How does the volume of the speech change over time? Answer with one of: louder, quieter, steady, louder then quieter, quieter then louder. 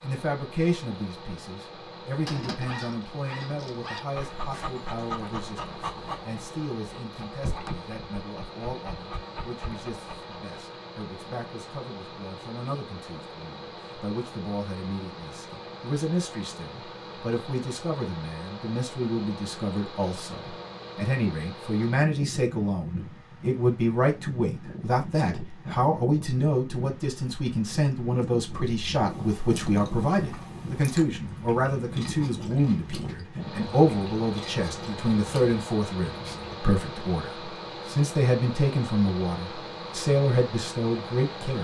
louder.